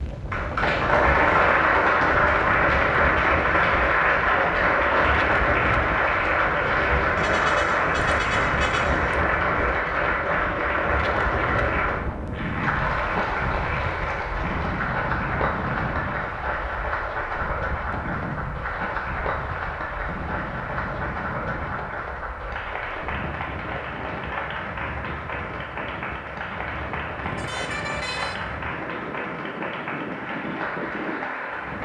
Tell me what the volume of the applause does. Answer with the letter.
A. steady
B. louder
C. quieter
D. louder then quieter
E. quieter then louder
C.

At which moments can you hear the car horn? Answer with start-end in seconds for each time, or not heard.
7.2-9.2, 27.2-28.4.